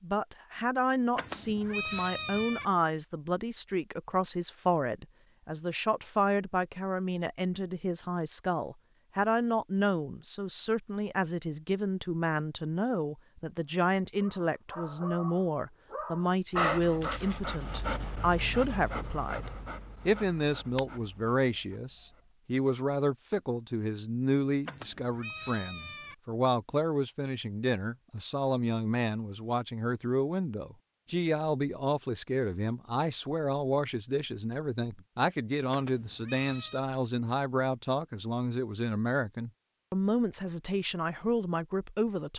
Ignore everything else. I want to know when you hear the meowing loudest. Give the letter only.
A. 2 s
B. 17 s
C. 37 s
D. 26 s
A.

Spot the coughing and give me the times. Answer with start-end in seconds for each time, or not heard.
not heard.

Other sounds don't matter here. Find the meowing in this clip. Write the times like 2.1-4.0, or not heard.
1.1-2.6, 24.6-26.1, 35.7-36.9.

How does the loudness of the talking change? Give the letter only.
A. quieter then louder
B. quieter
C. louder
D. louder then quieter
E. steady
E.